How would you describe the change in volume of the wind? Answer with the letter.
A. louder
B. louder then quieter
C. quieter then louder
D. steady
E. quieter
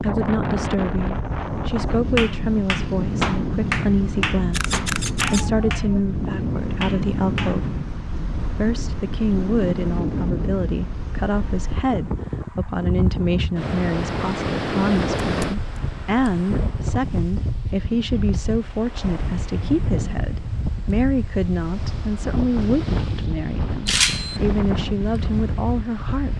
D.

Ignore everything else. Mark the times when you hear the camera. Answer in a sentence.
The camera can be heard from 4.5 to 5.5 s, from 15.2 to 15.8 s and from 23.9 to 24.4 s.